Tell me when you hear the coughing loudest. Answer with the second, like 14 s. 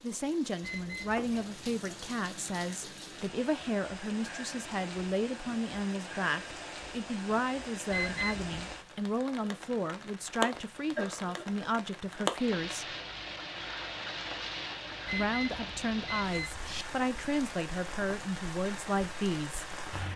11 s.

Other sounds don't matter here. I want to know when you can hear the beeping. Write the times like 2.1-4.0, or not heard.
0.6-1.4, 7.9-8.7, 15.1-16.9.